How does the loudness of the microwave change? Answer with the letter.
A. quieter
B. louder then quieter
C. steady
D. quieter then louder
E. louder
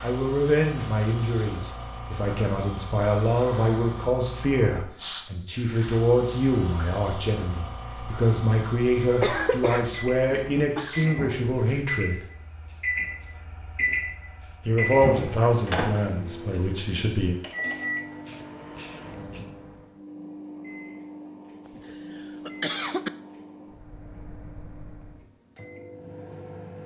A.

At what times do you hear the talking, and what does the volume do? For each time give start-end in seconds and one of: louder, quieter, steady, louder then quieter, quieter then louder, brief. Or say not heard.
0.0-12.2 steady
14.7-17.4 brief.